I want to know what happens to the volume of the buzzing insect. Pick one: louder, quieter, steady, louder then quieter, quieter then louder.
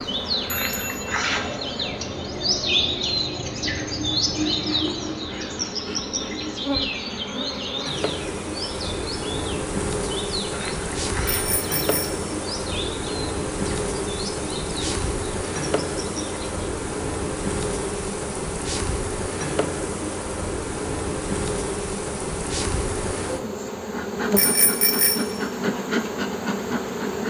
louder.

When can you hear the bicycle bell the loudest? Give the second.
25 s.